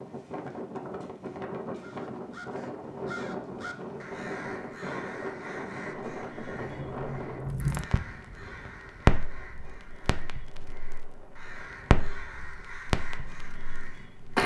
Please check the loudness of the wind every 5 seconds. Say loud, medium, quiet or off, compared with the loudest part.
loud, loud, quiet.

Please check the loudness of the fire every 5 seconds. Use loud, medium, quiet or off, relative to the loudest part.
off, loud, loud.